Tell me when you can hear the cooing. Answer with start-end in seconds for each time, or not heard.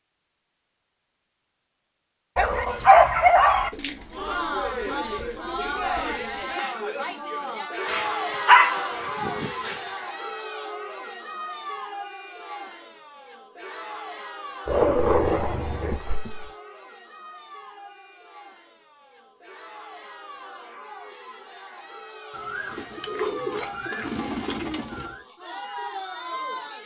3.7-6.5, 22.3-25.2.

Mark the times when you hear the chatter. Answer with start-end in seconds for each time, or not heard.
4.1-26.8.